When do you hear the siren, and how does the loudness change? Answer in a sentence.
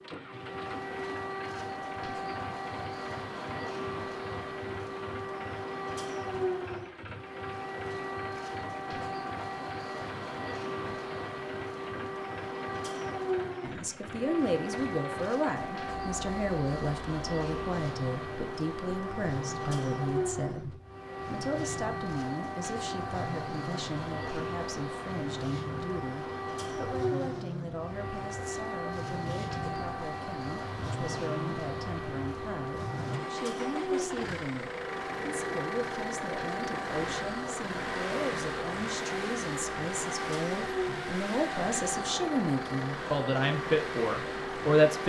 The siren can be heard from 0.0 to 45.0 s, at a steady volume.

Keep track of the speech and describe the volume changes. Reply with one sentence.
The volume of the speech goes down, then up.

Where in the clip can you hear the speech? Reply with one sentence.
You can hear the speech from 13.6 to 45.0 s.